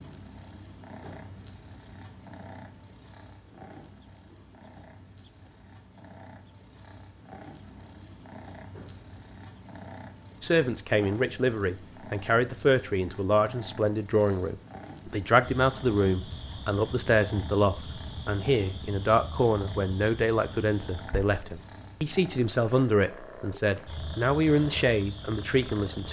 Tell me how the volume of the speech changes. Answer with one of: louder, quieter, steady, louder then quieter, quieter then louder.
steady.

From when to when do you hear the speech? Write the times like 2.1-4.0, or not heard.
10.4-26.0.